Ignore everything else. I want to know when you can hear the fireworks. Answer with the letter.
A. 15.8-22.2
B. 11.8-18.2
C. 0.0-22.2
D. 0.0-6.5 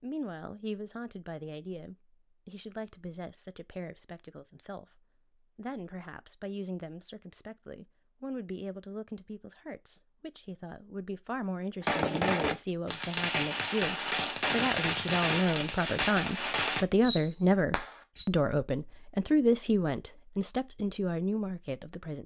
B.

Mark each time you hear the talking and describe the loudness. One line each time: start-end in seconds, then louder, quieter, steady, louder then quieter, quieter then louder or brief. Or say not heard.
0.0-22.2 louder.